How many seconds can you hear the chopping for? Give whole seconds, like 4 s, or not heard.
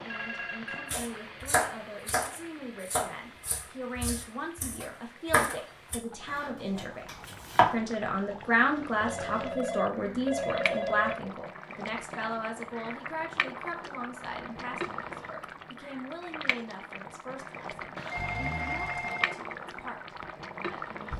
7 s.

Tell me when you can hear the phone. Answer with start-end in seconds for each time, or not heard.
0.1-0.9, 9.0-11.2, 17.9-19.4.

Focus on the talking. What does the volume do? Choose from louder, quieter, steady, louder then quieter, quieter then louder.
louder then quieter.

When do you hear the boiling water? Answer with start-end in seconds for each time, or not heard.
0.0-21.1.